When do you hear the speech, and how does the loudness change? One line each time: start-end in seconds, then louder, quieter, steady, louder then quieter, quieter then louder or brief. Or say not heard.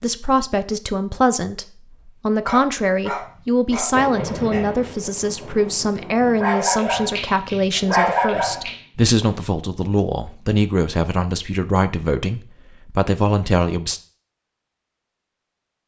0.0-14.0 steady.